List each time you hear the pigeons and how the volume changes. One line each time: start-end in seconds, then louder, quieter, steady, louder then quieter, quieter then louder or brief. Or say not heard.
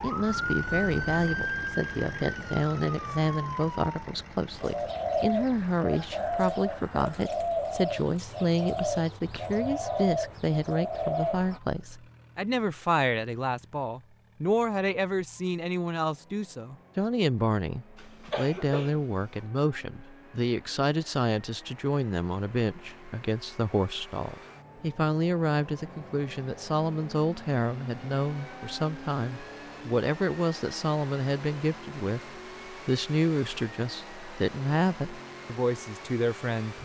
4.5-11.6 steady.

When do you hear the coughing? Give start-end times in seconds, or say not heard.
17.9-19.4.